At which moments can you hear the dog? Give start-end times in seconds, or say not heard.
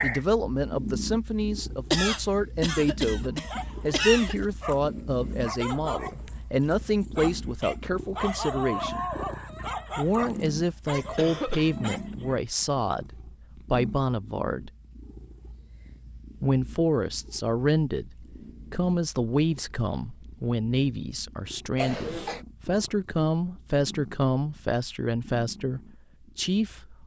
3.2-12.3.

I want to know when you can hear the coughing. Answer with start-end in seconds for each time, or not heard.
1.9-4.5, 11.2-12.2, 21.8-22.4.